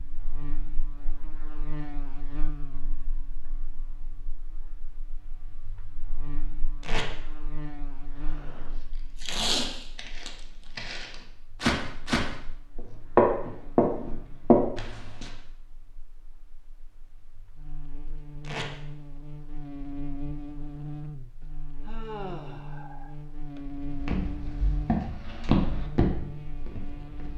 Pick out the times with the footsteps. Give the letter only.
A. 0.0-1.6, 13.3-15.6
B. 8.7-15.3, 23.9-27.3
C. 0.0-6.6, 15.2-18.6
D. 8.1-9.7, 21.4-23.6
B.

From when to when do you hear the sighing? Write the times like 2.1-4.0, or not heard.
8.1-9.7, 21.4-23.6.